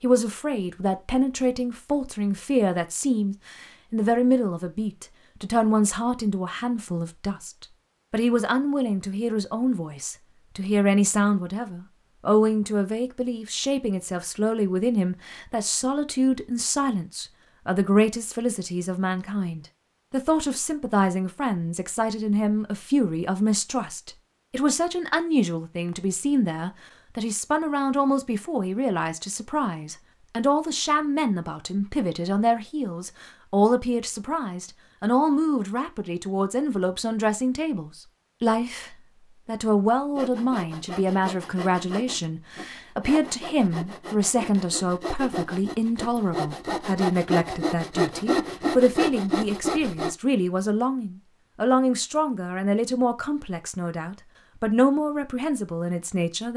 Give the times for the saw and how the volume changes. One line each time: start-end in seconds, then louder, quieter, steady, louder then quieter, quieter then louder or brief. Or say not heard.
40.1-50.1 louder.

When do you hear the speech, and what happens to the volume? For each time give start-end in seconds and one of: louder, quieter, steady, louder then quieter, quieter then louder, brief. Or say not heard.
0.0-56.5 steady.